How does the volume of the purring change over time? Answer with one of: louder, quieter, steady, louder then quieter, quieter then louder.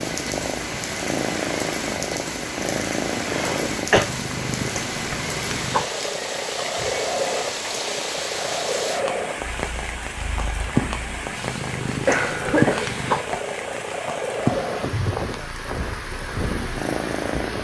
steady.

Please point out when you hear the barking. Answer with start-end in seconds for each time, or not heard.
not heard.